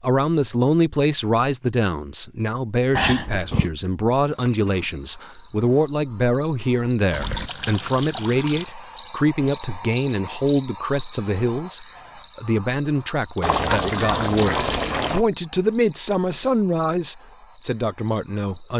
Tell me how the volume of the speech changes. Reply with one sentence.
The volume of the speech stays about the same.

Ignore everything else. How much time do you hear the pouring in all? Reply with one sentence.
You can hear the pouring for 4 seconds altogether.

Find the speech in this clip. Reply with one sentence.
You can hear the speech from 0.0 to 18.7 s.